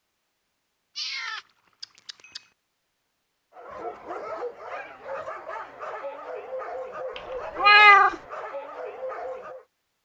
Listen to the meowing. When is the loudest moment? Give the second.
8 s.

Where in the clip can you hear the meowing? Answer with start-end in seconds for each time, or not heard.
0.9-2.5, 7.2-8.2.